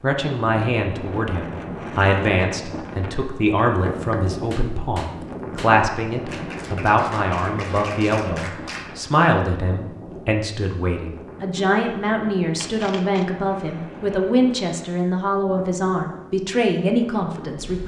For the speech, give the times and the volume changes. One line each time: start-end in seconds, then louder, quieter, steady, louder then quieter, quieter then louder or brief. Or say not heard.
0.0-17.8 steady.